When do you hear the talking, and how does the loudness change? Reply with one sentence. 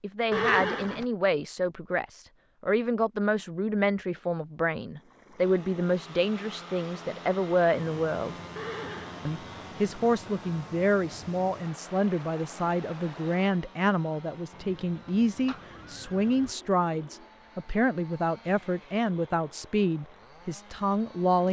The talking can be heard from 0.0 to 8.3 s, at a steady volume; and from 9.2 to 21.4 s, at a steady volume.